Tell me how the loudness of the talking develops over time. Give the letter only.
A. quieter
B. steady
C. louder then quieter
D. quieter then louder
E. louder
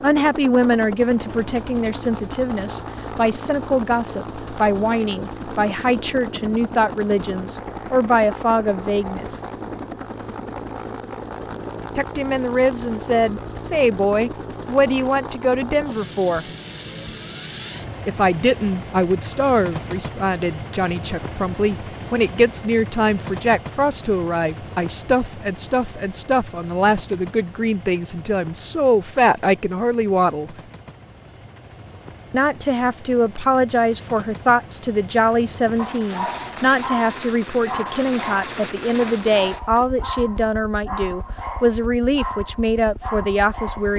B.